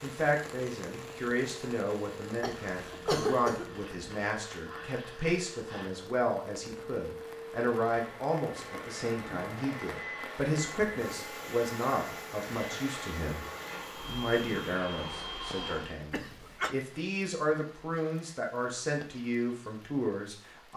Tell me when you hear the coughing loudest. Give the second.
3 s.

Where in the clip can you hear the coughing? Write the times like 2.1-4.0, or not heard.
2.4-3.8, 16.1-16.8.